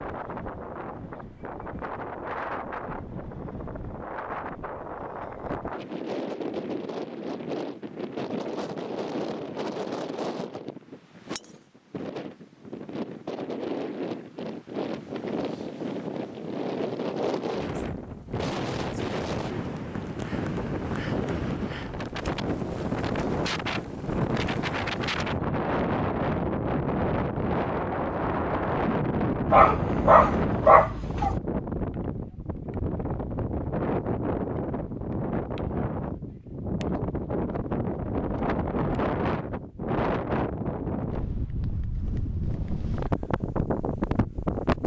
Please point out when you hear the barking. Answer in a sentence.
You can hear the barking from 29.4 to 31.4 s.